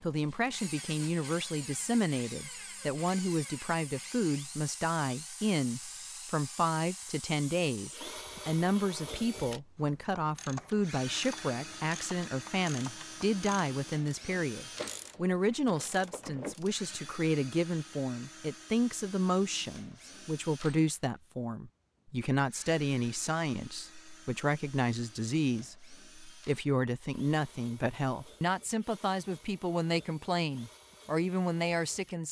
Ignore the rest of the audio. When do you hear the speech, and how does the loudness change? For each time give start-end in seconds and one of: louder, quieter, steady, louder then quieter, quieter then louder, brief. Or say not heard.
0.0-32.2 steady.